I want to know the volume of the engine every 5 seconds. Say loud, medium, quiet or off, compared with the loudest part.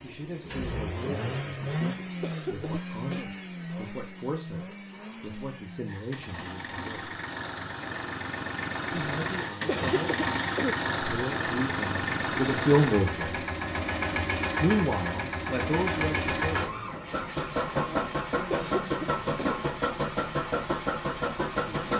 medium, medium, loud, loud, loud.